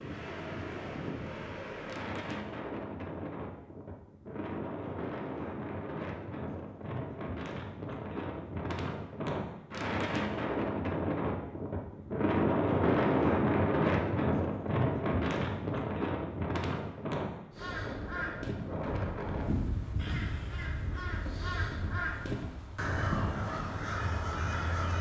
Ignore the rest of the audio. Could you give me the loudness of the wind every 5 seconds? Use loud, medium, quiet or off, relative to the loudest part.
medium, medium, loud, medium, quiet.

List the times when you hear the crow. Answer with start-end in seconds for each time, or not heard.
17.5-24.9.